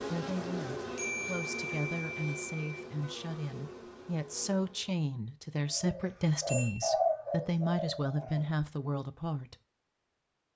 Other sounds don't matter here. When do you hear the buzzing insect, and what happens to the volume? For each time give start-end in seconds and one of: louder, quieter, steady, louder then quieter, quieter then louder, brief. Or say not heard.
0.0-5.0 quieter.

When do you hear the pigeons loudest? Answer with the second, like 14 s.
7 s.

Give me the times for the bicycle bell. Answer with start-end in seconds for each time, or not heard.
0.9-2.8, 6.0-6.9.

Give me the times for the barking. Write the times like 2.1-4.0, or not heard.
not heard.